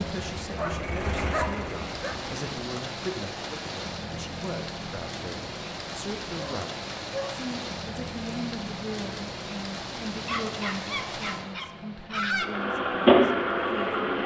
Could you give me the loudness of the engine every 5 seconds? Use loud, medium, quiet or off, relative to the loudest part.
quiet, off, loud.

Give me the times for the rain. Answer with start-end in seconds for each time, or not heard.
0.0-14.2.